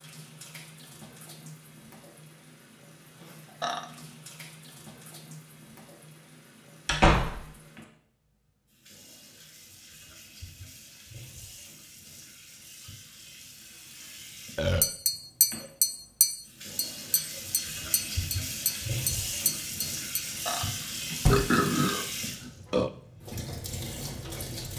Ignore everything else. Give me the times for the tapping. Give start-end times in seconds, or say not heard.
14.8-20.2.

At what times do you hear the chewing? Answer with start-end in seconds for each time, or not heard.
not heard.